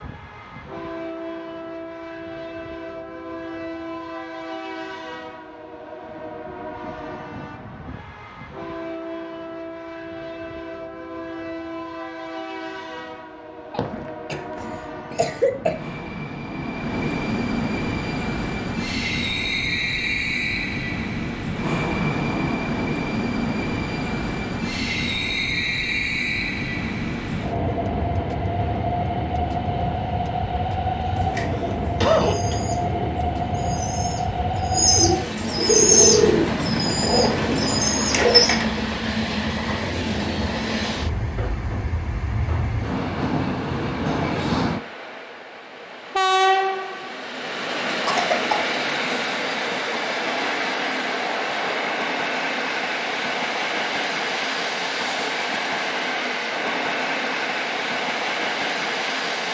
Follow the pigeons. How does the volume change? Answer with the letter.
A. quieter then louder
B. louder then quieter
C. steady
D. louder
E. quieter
B.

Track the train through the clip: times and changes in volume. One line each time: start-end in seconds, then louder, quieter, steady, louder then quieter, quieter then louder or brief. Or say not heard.
0.0-59.4 louder.